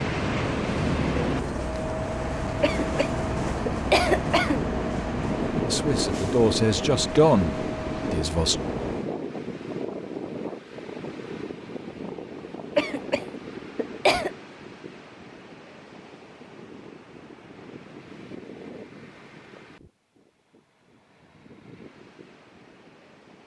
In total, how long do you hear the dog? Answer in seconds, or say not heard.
not heard.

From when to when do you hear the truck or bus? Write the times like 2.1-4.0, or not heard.
0.0-9.1.